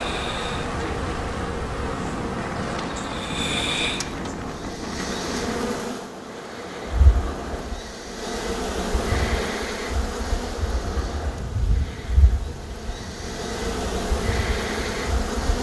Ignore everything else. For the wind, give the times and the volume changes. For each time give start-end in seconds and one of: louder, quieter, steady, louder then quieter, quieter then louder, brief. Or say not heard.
0.0-15.5 quieter.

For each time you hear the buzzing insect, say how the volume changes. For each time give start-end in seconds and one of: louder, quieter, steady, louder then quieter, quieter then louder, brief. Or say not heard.
0.0-15.5 steady.